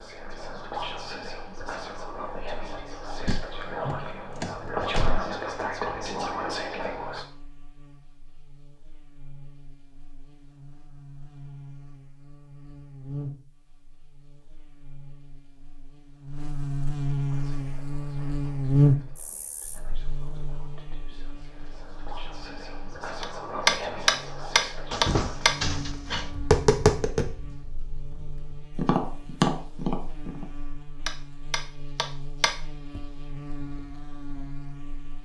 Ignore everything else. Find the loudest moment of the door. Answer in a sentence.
The volume of the door peaks at 25 seconds.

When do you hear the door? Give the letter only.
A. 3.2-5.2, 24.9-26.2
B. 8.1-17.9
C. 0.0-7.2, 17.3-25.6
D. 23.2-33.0
A.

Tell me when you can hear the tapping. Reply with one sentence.
The tapping can be heard from 23.2 to 33.0 s.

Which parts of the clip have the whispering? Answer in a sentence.
You can hear the whispering from 0.0 to 7.2 s and from 17.3 to 25.6 s.